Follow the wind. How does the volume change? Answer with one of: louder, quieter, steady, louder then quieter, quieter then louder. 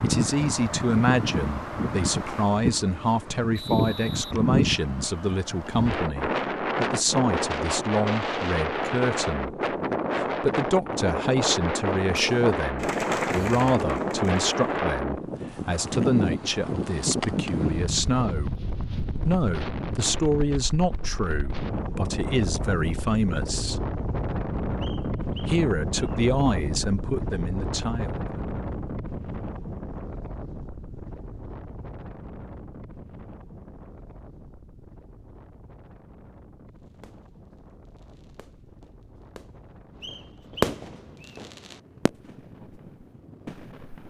quieter.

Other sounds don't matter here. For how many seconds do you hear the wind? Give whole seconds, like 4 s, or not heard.
44 s.